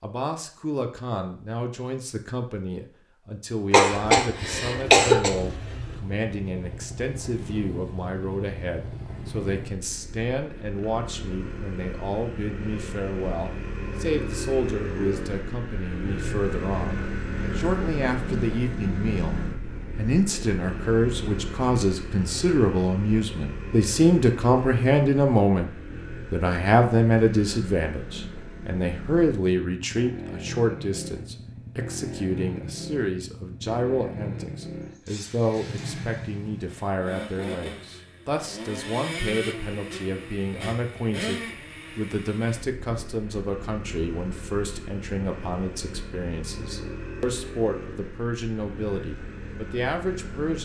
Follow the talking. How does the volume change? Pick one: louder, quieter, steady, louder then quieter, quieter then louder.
louder then quieter.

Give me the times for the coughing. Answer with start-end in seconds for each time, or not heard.
3.7-5.3.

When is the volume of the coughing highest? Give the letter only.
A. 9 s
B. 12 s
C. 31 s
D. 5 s
D.